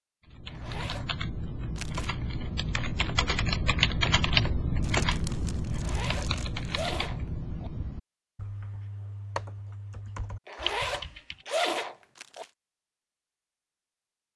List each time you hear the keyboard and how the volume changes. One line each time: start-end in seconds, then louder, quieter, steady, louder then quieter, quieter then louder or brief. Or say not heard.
0.2-11.4 louder then quieter.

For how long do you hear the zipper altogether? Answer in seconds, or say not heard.
5 s.